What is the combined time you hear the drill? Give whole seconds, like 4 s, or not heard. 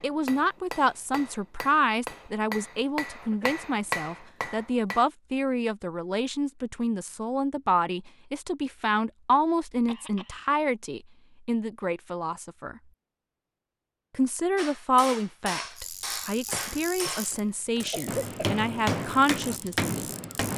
not heard.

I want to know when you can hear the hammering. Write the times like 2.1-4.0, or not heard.
0.0-5.0, 14.6-20.5.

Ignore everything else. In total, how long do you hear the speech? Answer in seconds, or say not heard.
19 s.